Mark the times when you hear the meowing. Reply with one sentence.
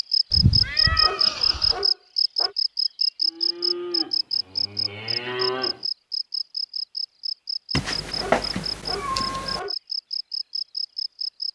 You can hear the meowing from 0.3 to 1.8 s and from 7.7 to 9.6 s.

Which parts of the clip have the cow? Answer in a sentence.
You can hear the cow from 3.2 to 5.8 s.